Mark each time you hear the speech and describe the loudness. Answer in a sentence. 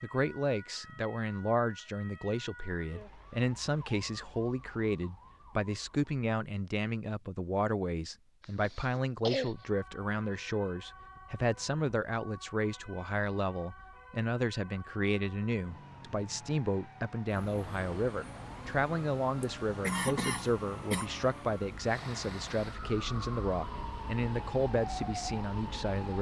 The speech can be heard from 0.0 to 26.1 s, at a steady volume.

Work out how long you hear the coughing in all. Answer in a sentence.
The coughing can be heard for 3 seconds in total.